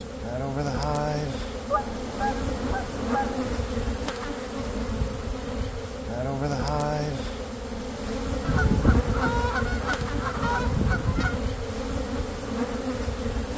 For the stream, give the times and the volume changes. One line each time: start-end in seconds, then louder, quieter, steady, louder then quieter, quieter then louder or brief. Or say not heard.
not heard.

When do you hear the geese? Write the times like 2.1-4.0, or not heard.
1.6-3.6, 8.4-11.4.